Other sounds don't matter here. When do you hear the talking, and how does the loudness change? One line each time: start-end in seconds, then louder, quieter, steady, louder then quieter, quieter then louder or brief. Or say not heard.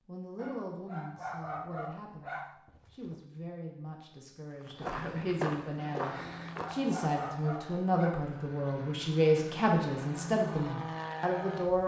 0.0-11.8 louder.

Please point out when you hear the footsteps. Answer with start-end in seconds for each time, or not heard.
4.8-6.8.